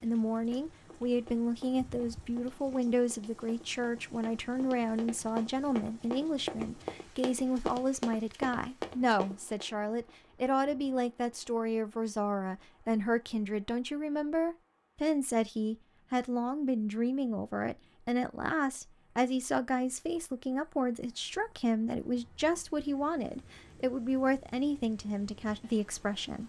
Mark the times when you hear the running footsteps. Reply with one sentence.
The running footsteps can be heard from 0.5 to 9.7 s.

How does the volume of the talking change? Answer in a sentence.
The loudness of the talking stays about the same.